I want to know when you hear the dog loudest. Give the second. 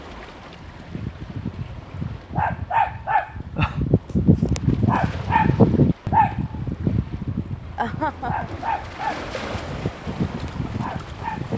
6 s.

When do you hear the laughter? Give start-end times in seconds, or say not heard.
3.1-3.8, 7.8-8.5.